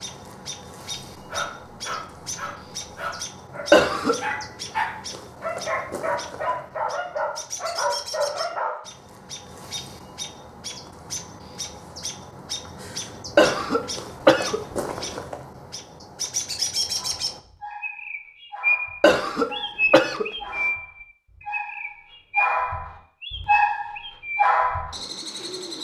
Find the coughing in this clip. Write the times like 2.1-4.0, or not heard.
3.7-4.2, 13.3-15.2, 19.0-20.3.